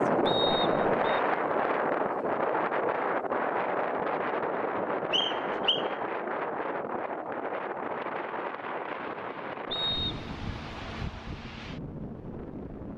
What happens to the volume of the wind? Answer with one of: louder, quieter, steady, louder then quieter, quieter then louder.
quieter.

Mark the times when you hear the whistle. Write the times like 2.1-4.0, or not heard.
0.2-1.2, 5.1-5.8, 9.7-10.3.